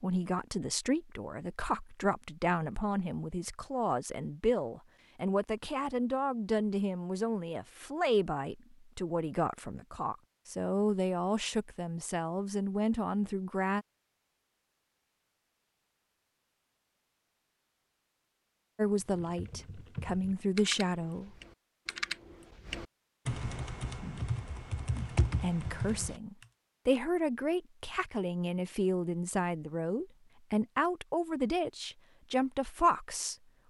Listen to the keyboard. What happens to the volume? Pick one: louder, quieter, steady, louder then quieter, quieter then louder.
louder.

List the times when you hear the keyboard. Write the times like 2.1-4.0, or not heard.
18.9-26.1.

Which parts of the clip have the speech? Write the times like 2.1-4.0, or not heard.
0.0-13.8, 18.8-21.4, 24.9-33.6.